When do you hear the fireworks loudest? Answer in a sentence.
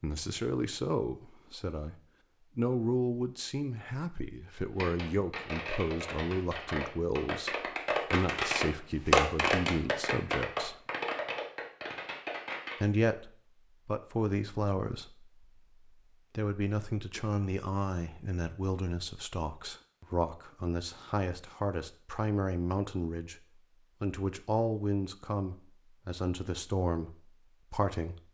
The loudest moment of the fireworks is at 9 seconds.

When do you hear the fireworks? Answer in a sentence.
You can hear the fireworks from 4.8 to 12.8 s.